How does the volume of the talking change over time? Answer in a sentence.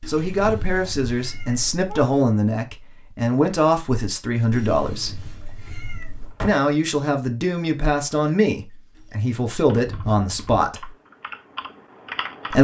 The volume of the talking stays about the same.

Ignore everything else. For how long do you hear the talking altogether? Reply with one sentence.
The talking can be heard for 10 seconds in total.